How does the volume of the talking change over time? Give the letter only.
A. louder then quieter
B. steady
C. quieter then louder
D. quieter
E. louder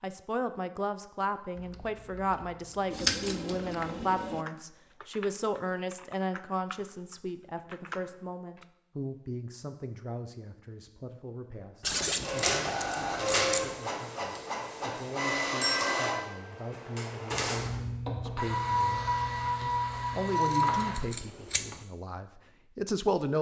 C.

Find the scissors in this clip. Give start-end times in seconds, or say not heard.
2.9-4.5, 11.8-13.8, 20.4-21.9.